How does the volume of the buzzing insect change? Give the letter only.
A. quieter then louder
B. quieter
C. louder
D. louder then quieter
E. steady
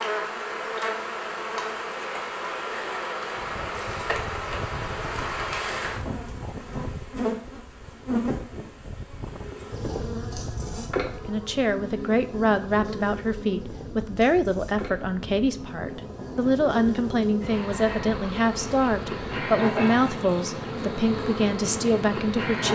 A.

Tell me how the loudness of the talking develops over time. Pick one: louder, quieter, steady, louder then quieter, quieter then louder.
steady.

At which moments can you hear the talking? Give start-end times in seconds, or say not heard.
11.2-22.7.